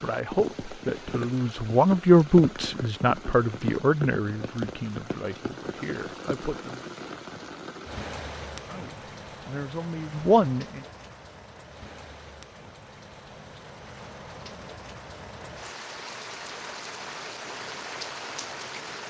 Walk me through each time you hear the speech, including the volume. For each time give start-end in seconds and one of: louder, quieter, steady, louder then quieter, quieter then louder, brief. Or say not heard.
0.0-7.0 louder then quieter
8.7-10.8 brief.